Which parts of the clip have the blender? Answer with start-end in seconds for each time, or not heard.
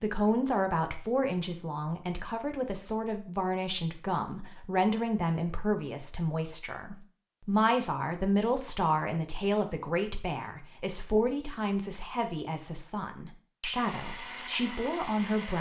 13.8-15.5.